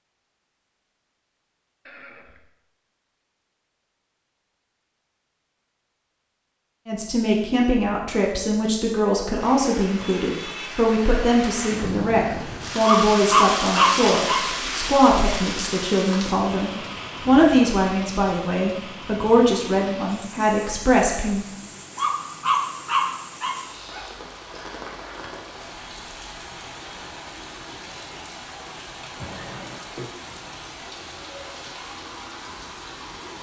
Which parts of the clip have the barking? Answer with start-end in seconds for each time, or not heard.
12.8-14.4, 21.9-24.1.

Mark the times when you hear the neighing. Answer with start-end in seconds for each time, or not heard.
1.9-2.5, 29.2-30.1.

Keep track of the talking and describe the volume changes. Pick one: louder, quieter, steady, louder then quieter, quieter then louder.
steady.